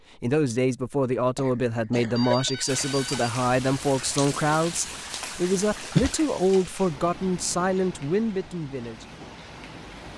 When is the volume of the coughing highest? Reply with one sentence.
The loudest moment of the coughing is at 6 seconds.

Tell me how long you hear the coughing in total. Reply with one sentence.
The coughing can be heard for 2 seconds in total.